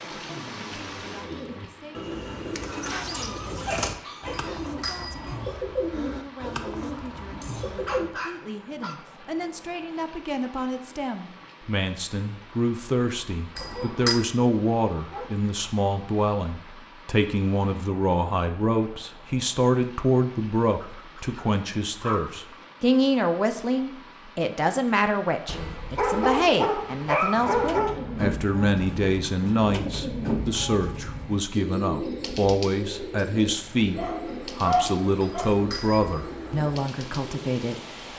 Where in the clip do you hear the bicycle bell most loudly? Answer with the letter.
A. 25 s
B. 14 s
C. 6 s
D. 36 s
B.